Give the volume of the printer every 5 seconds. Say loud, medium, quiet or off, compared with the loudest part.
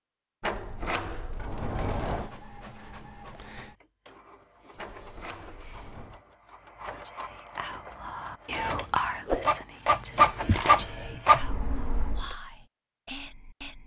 quiet, medium, loud.